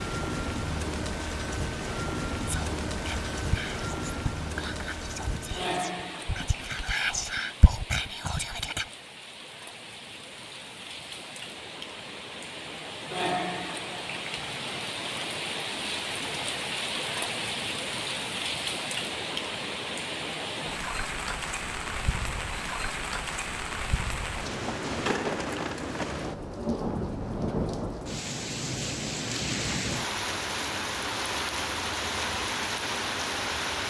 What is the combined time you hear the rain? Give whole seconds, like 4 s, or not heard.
34 s.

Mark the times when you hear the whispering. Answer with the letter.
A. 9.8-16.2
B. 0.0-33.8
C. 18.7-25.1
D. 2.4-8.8
D.